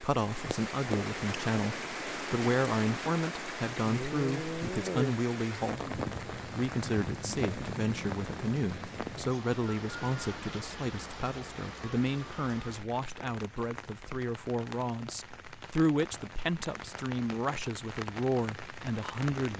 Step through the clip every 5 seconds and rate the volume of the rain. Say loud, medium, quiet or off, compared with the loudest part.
loud, loud, medium, medium.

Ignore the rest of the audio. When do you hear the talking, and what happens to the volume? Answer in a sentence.
The talking can be heard from 0.0 to 19.5 s, at a steady volume.